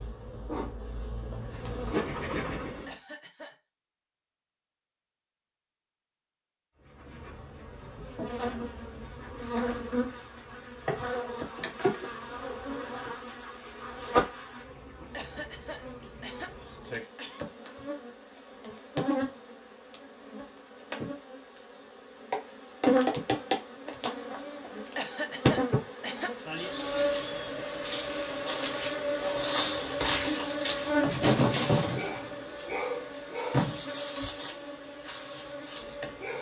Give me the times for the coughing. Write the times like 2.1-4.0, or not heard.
2.9-3.5, 15.1-17.4, 24.9-26.3.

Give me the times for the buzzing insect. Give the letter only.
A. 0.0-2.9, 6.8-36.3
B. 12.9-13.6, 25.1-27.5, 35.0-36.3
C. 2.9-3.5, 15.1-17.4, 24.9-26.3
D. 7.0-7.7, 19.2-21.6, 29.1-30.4
A.